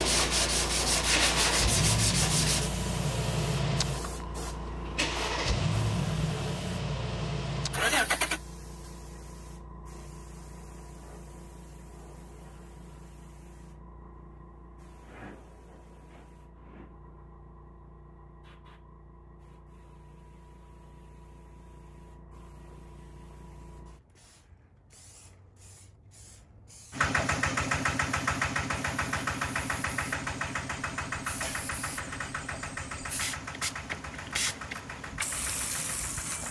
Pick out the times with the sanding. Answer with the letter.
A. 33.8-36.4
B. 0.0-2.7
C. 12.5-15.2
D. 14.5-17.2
B.